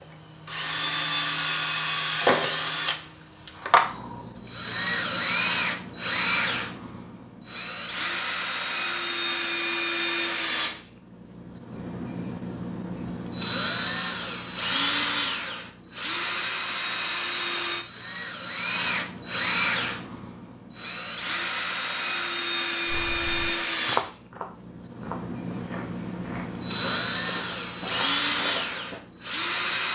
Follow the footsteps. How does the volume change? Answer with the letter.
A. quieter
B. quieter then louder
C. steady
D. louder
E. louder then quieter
B.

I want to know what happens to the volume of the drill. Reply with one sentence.
The volume of the drill stays about the same.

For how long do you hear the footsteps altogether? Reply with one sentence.
The footsteps can be heard for 6 seconds in total.